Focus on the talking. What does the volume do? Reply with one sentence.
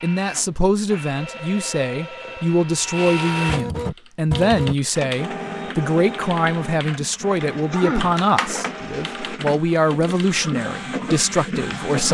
The volume of the talking stays about the same.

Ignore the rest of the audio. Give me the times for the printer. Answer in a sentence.
You can hear the printer from 0.0 to 12.0 s.